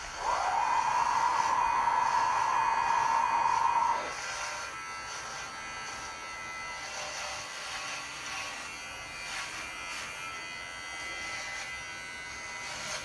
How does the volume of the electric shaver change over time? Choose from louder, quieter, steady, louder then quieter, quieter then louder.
steady.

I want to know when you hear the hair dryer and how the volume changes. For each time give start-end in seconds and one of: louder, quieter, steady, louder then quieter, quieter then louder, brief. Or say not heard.
0.0-12.7 quieter.